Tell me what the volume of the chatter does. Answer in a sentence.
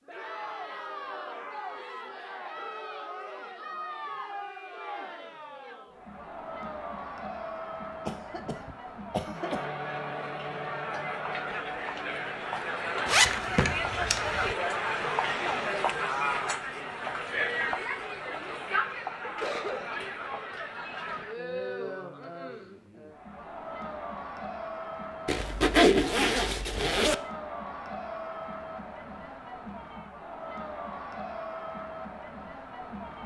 The loudness of the chatter goes up, then down.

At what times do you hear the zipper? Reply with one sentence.
The zipper can be heard from 13.1 to 14.6 s and from 25.2 to 27.1 s.